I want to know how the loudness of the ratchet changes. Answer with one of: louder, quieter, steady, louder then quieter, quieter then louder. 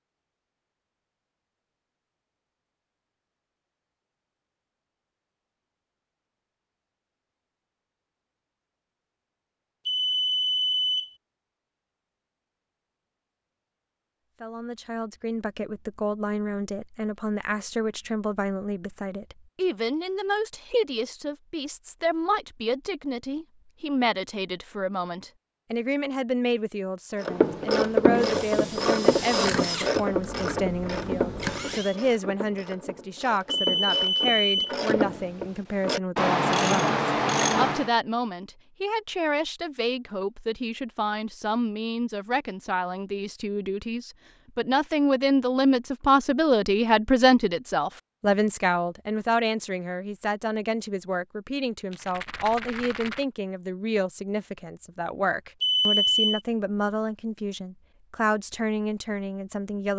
quieter then louder.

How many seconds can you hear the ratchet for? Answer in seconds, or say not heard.
11 s.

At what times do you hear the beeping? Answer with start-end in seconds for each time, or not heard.
9.8-11.1, 33.5-34.8, 55.6-56.4.